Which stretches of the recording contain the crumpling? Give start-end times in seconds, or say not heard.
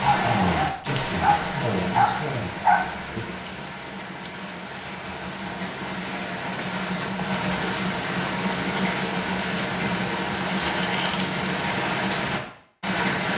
10.4-11.2.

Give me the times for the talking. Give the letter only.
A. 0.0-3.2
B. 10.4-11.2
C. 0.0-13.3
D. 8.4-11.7
A.